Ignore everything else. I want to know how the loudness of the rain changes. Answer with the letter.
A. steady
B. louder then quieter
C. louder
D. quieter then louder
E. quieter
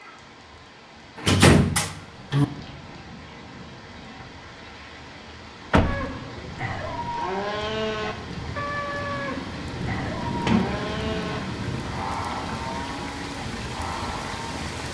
C.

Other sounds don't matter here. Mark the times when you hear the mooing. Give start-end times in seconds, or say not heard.
5.8-14.5.